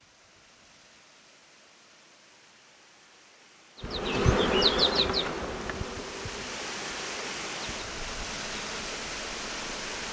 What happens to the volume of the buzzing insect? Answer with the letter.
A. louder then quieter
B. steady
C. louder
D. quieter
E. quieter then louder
D.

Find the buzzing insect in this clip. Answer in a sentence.
The buzzing insect can be heard from 3.8 to 10.0 s.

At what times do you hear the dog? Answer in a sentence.
The dog can't be heard in this clip.